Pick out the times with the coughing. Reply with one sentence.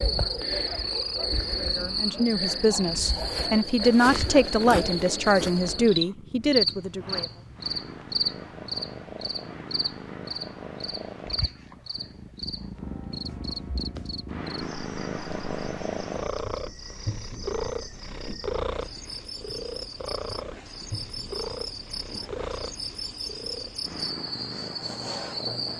You can't hear the coughing here.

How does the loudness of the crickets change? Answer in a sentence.
The loudness of the crickets goes down, then up.